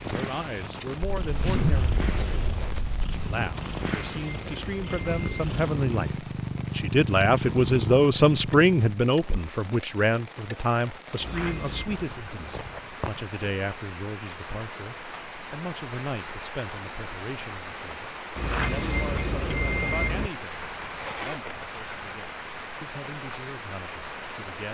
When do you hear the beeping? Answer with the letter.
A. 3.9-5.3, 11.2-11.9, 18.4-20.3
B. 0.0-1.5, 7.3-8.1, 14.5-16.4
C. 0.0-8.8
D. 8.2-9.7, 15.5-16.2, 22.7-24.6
A.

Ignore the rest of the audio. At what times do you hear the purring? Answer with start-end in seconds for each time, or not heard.
0.0-8.8.